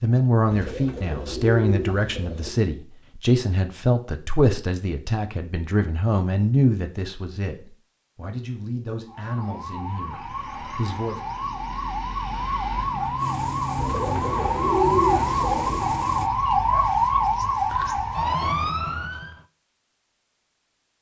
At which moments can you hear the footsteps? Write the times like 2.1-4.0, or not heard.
not heard.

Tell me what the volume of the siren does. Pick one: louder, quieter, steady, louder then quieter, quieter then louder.
louder.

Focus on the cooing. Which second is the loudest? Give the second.
15 s.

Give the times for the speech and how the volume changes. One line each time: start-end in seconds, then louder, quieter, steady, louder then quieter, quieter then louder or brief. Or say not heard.
0.0-11.2 quieter.